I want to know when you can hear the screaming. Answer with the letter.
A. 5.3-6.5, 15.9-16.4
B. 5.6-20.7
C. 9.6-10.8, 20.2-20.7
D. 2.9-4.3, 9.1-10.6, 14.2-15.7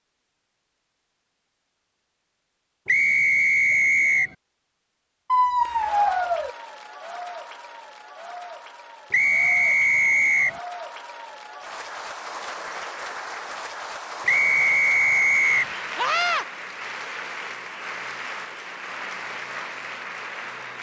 A.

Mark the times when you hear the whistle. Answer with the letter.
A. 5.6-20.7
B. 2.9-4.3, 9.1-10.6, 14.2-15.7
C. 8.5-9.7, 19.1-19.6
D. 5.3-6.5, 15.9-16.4
B.